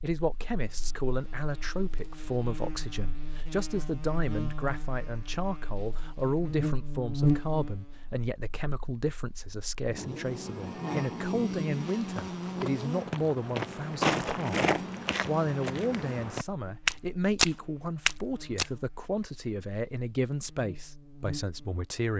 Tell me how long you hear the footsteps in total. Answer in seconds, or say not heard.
7 s.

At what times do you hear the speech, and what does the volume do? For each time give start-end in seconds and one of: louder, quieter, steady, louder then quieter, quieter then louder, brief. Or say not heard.
0.0-22.1 steady.